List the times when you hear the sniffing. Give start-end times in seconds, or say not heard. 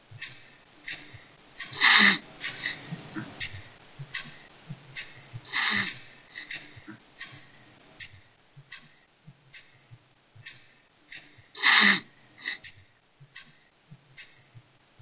1.7-3.2, 5.5-7.0, 11.6-12.6.